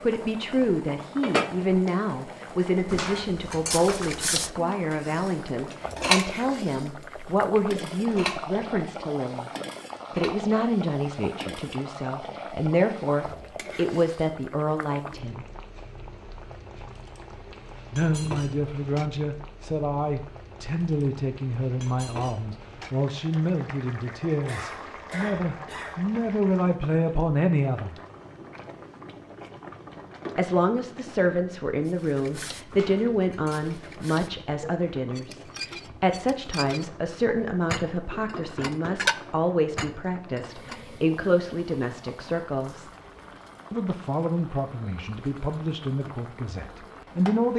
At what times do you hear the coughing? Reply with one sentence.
The coughing can be heard from 24.4 to 26.1 s.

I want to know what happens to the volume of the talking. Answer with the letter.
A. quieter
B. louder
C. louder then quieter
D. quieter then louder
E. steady
E.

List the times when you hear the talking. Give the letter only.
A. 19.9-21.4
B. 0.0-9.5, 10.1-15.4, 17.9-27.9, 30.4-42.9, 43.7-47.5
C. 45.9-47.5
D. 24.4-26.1
B.